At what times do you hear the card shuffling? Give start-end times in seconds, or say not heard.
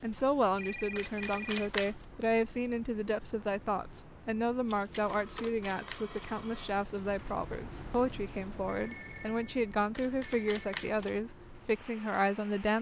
0.9-2.0, 5.0-6.3, 9.9-11.2.